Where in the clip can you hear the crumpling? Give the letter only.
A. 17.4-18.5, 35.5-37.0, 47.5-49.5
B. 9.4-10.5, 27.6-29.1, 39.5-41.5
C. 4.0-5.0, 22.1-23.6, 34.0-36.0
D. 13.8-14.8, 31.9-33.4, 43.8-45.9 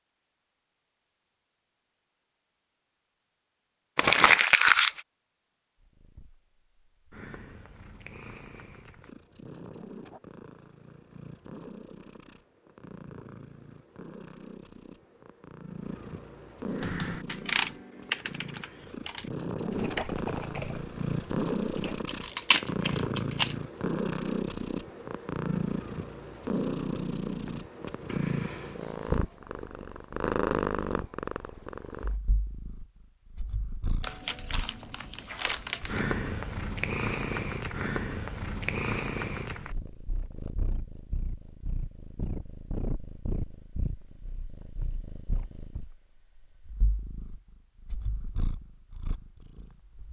C.